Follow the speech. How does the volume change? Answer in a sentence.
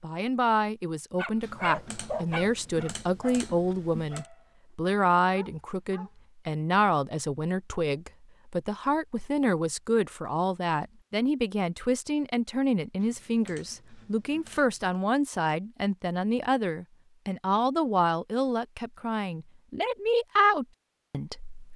The volume of the speech stays about the same.